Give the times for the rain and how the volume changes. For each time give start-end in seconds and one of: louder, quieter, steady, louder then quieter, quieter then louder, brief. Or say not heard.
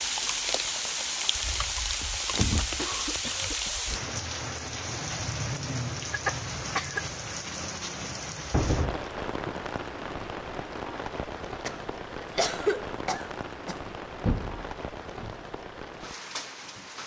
0.0-17.0 quieter.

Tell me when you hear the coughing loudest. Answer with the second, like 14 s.
13 s.